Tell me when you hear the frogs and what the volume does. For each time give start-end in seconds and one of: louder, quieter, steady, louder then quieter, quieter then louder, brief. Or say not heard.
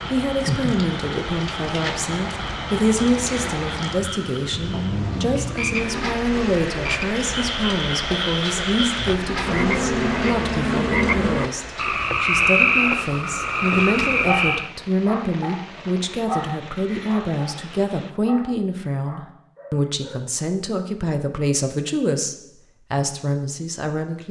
0.0-14.7 louder.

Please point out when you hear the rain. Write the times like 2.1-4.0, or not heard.
0.0-18.1.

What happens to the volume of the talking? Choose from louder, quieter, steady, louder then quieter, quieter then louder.
steady.